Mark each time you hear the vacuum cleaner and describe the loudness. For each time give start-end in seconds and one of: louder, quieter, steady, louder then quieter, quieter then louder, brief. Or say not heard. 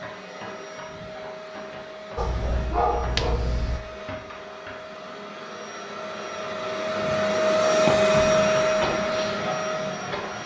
0.0-10.4 louder.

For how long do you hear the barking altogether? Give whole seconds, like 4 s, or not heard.
2 s.